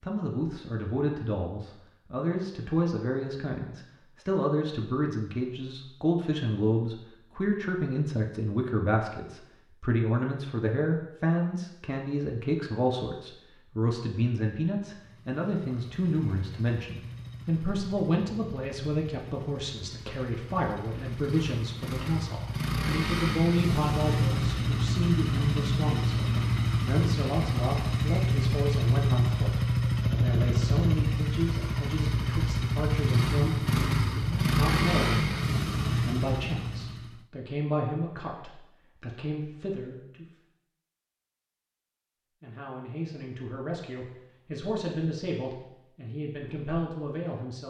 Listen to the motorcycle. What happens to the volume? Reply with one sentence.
The volume of the motorcycle goes up.